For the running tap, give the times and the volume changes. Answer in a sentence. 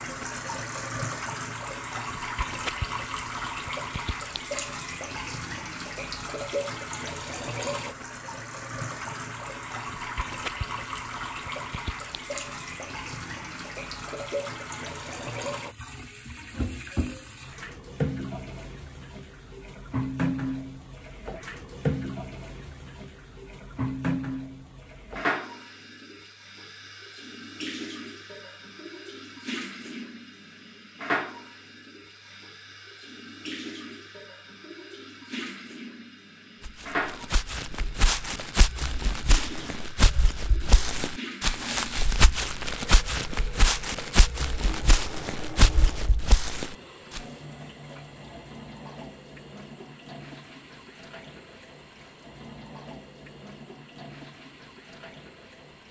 The running tap can be heard from 0.0 to 55.8 s, getting quieter.